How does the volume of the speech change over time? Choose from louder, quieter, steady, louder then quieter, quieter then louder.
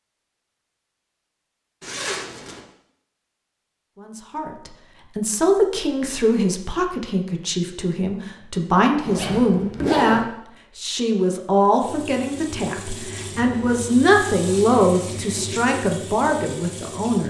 steady.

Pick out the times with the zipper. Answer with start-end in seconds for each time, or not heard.
1.8-2.6, 9.0-10.2.